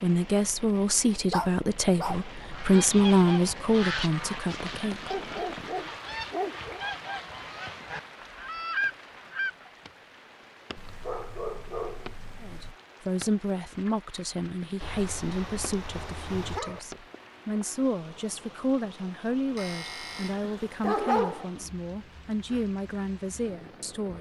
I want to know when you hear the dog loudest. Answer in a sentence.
The volume of the dog peaks at 21 seconds.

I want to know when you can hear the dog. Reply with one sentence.
The dog can be heard from 1.3 to 2.3 s, from 5.1 to 6.8 s, from 10.8 to 12.8 s, from 14.8 to 16.8 s and from 19.6 to 21.4 s.